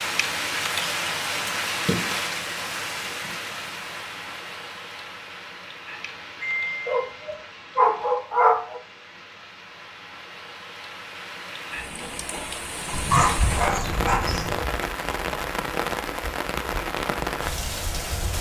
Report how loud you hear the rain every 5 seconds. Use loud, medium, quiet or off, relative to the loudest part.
loud, quiet, loud, loud.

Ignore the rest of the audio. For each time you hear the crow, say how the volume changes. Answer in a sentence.
The crow can't be heard in this clip.